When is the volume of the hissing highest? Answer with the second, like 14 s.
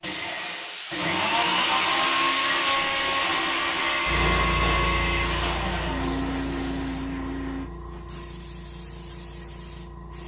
3 s.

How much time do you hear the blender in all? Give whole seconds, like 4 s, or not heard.
8 s.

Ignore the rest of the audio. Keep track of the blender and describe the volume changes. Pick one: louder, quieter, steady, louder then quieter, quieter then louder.
quieter.